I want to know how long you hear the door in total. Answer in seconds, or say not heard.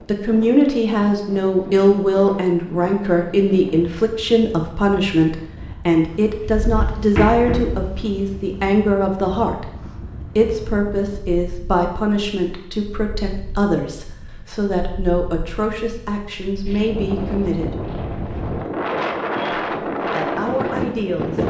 2 s.